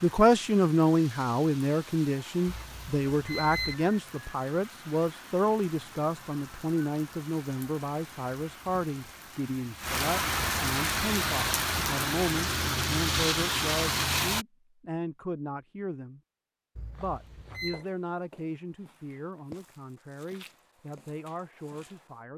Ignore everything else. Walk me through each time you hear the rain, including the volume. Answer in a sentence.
You can hear the rain from 0.0 to 14.4 s, getting louder.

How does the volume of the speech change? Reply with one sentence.
The loudness of the speech goes down.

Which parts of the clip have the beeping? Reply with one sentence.
You can hear the beeping from 2.5 to 3.8 s and from 16.8 to 17.9 s.